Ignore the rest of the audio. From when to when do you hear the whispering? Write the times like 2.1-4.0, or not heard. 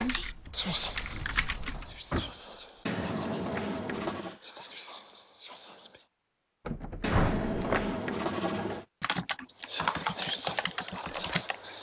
0.0-6.0, 9.6-11.7.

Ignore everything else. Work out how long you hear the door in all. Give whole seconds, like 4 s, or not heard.
3 s.